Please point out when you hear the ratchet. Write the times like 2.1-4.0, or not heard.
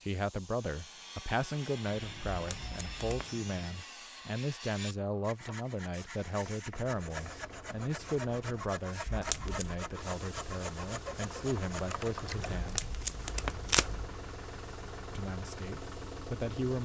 not heard.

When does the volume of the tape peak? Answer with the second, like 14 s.
14 s.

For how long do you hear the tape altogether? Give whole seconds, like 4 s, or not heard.
3 s.